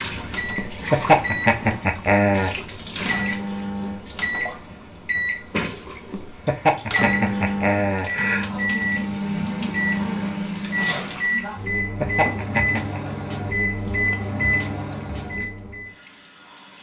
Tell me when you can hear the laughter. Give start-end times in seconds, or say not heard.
0.6-2.5, 6.1-8.6, 11.7-13.0.